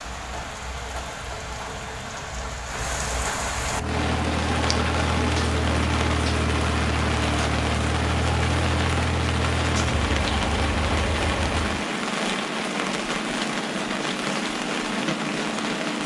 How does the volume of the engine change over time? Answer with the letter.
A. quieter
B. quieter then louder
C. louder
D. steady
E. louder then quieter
D.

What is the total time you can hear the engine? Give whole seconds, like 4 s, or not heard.
8 s.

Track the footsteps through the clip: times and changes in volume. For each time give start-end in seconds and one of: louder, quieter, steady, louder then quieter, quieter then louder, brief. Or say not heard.
not heard.